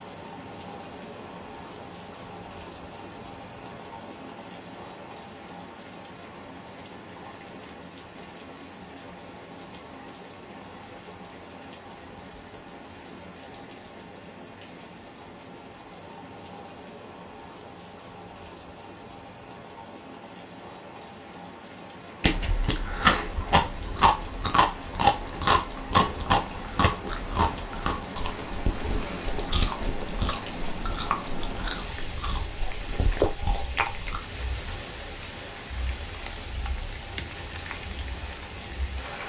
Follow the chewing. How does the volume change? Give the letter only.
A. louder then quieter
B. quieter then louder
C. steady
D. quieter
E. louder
D.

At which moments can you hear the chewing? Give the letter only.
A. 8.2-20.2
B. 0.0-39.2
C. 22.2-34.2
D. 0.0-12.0
C.